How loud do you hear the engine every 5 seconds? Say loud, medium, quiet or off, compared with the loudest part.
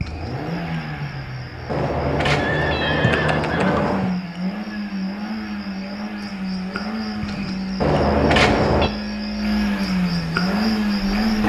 medium, medium, loud.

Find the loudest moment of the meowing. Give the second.
8 s.